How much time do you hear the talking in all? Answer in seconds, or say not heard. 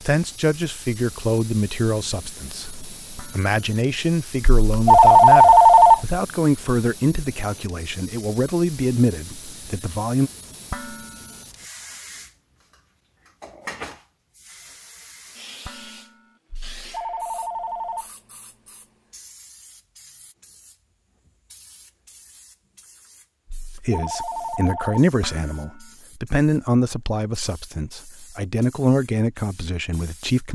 17 s.